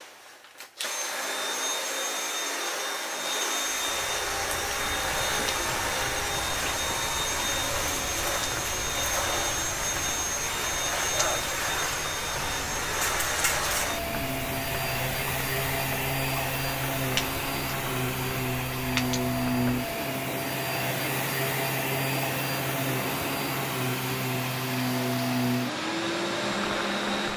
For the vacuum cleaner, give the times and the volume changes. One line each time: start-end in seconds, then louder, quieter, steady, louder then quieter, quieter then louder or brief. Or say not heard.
0.0-27.3 steady.